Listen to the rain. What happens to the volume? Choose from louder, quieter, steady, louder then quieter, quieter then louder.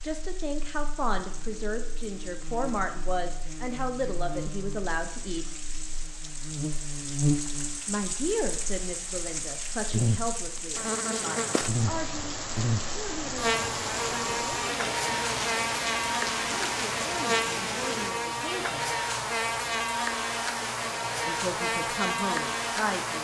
louder.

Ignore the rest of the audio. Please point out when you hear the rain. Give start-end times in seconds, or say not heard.
0.0-18.1.